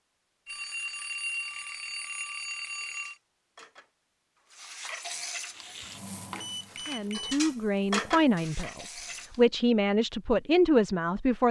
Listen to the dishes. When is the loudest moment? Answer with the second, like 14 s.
8 s.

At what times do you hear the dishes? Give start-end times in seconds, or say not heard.
2.8-9.3.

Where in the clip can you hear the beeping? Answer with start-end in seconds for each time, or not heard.
0.5-3.1, 6.3-7.3.